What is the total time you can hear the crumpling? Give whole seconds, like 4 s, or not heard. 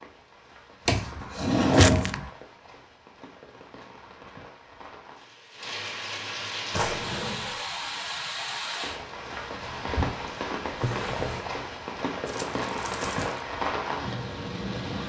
2 s.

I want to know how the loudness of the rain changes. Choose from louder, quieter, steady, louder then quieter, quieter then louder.
louder.